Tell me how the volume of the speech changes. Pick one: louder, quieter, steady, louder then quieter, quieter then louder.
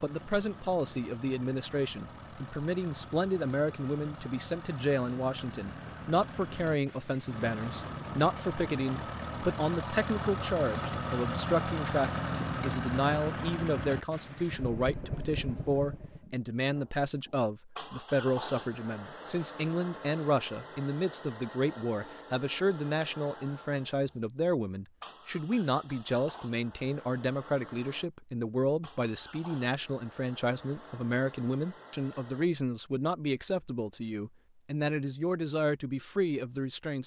steady.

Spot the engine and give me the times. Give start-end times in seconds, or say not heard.
0.0-32.5.